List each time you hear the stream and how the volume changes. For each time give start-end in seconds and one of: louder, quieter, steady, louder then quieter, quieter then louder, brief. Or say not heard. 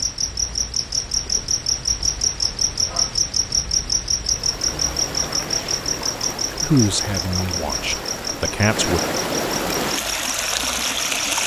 4.2-11.4 louder.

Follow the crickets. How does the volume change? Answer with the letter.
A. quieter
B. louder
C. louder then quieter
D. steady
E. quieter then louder
A.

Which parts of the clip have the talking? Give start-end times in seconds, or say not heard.
6.6-9.0.